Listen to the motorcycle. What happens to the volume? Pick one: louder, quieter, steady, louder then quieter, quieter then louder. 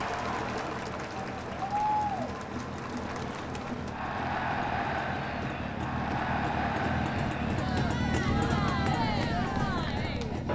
louder.